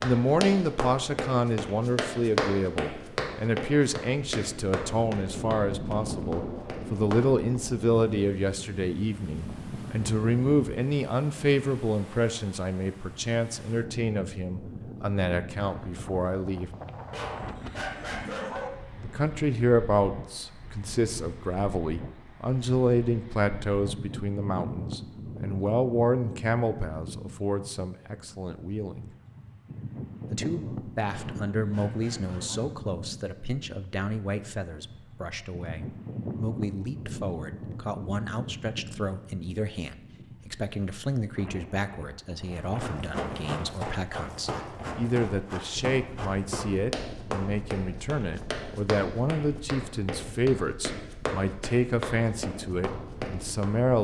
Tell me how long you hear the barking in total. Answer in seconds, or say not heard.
3 s.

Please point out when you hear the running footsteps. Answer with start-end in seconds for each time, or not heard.
0.0-7.2, 42.5-53.6.